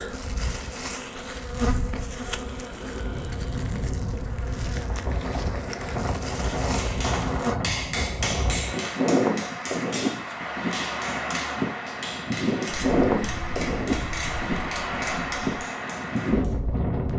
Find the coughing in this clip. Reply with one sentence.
You can't hear the coughing here.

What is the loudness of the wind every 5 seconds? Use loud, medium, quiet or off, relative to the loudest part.
medium, loud, loud, loud.